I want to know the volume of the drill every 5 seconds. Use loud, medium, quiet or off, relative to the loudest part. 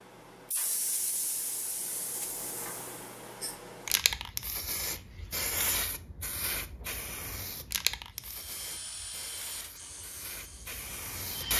off, loud, loud.